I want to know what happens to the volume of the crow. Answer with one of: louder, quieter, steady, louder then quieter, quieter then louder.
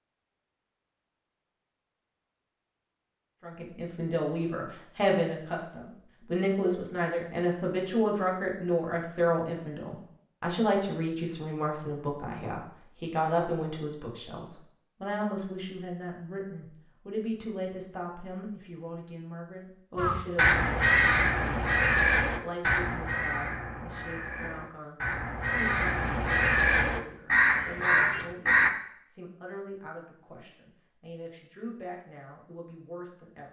quieter then louder.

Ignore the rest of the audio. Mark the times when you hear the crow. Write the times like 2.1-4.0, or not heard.
19.9-28.7.